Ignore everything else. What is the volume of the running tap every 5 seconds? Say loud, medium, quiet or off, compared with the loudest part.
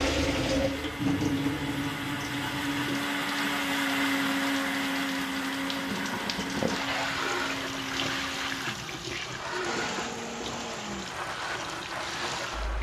loud, loud, medium.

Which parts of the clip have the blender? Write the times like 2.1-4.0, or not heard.
0.2-12.7.